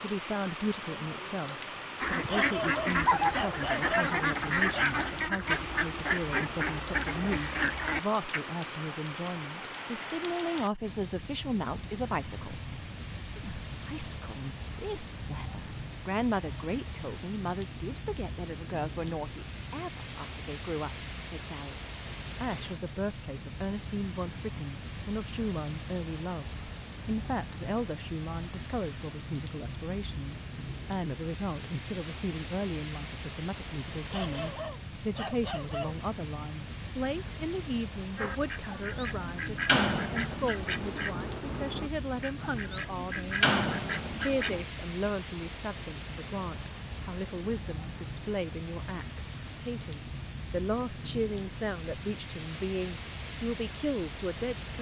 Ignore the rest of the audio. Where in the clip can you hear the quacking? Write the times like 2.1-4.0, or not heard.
2.0-8.4, 38.1-44.6.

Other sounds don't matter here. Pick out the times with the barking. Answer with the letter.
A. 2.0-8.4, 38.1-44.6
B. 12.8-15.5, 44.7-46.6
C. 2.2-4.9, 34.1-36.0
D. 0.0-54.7
C.